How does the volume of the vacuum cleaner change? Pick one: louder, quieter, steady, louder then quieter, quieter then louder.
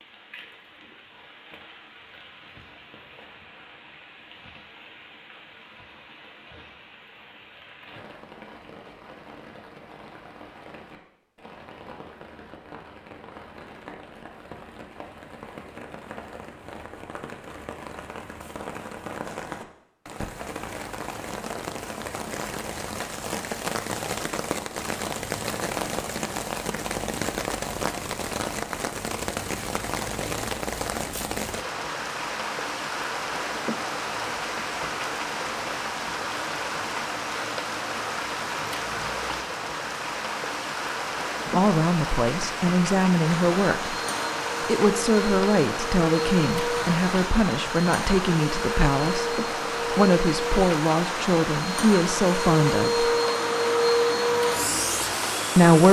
louder.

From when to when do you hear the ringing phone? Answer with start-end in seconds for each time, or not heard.
not heard.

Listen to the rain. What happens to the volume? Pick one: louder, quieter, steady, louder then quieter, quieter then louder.
louder.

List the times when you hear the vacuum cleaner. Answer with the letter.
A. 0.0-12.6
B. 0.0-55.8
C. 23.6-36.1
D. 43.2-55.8
D.